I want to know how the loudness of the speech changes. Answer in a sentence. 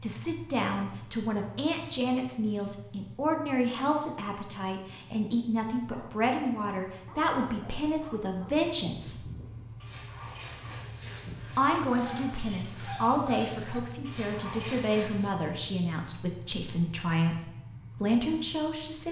The volume of the speech stays about the same.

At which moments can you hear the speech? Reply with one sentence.
You can hear the speech from 0.0 to 9.2 s and from 11.6 to 19.0 s.